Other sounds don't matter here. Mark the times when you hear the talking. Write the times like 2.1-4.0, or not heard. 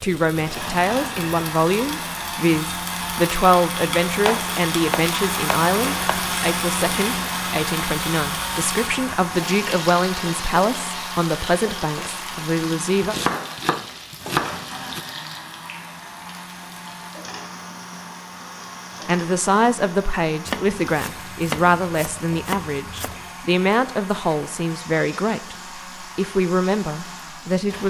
0.0-13.2, 19.1-25.6, 26.1-27.8.